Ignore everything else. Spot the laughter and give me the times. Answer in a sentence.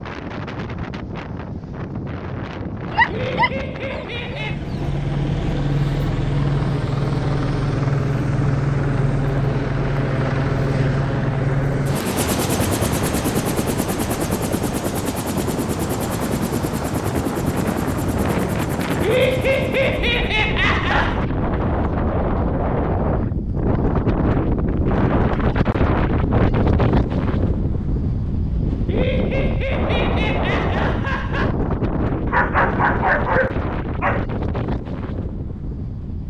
You can hear the laughter from 3.0 to 4.6 s, from 19.0 to 21.2 s and from 28.9 to 31.6 s.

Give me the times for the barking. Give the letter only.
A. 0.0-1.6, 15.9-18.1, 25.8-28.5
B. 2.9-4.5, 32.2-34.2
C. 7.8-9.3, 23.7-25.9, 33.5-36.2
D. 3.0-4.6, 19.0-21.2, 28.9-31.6
B.